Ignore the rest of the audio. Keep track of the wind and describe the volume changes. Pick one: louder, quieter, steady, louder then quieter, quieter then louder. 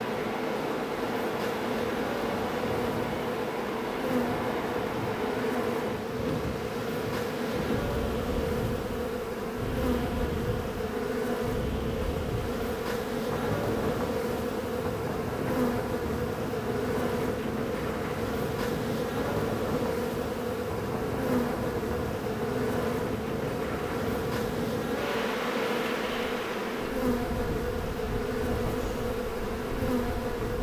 steady.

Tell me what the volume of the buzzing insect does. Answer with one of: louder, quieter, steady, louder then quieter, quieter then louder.
steady.